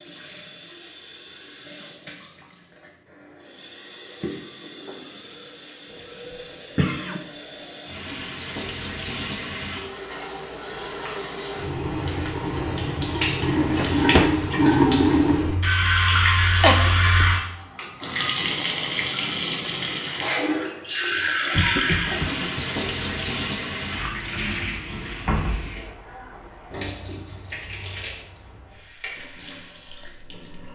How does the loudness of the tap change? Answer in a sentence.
The volume of the tap goes up, then down.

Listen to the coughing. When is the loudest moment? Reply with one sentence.
The volume of the coughing peaks at 17 seconds.